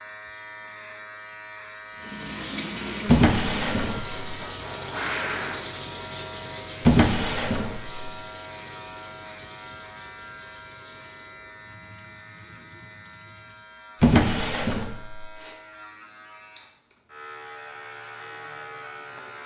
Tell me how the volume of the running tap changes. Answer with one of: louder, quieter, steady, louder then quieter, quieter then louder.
quieter.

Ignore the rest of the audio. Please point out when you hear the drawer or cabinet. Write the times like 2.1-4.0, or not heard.
3.0-4.2, 6.8-8.1, 14.0-15.3.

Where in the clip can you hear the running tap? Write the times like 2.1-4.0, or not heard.
1.9-13.8.